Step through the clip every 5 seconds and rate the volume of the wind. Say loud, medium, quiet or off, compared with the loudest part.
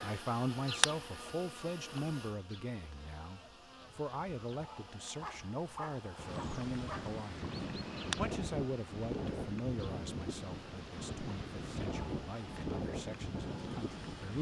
off, loud, loud.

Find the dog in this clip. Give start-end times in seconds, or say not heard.
5.2-7.2.